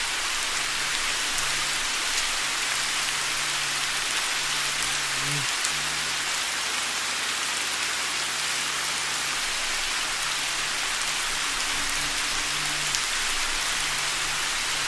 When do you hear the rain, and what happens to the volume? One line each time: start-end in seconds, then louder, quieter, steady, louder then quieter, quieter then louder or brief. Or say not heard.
0.0-14.8 steady.